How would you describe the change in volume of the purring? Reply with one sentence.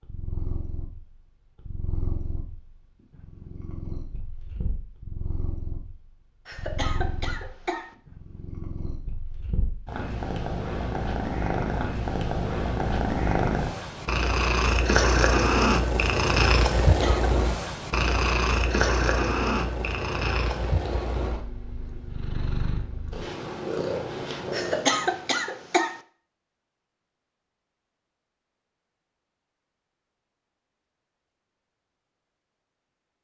The volume of the purring goes up, then down.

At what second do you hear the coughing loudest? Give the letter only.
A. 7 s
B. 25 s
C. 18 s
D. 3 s
B.